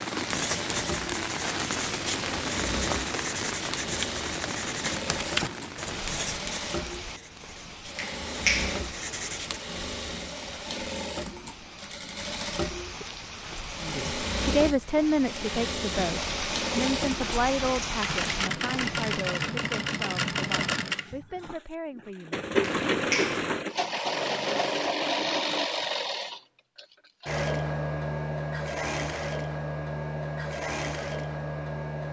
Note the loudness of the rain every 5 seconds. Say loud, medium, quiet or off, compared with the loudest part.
loud, medium, medium, loud, off, off, off.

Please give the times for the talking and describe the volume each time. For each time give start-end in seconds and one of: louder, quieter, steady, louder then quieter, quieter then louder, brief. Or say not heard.
13.8-22.4 quieter.